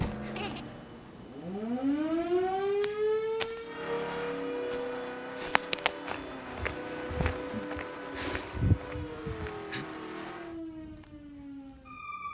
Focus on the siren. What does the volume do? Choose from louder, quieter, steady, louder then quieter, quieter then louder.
quieter.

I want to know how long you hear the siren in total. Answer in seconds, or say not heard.
12 s.